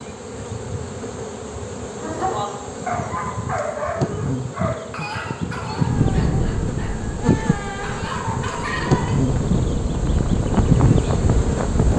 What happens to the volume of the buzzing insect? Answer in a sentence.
The loudness of the buzzing insect goes up.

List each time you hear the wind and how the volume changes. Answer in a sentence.
You can hear the wind from 5.9 to 11.9 s, getting quieter then louder.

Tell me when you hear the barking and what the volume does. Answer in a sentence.
The barking can be heard from 1.9 to 9.2 s, getting quieter then louder.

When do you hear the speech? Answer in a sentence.
You can't hear the speech here.